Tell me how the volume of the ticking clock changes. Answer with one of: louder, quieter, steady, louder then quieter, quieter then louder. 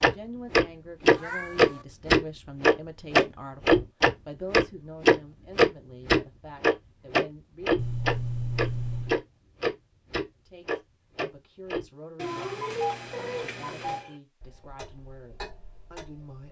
quieter.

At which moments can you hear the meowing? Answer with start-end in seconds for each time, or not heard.
1.1-1.9, 7.8-9.2, 12.2-14.1.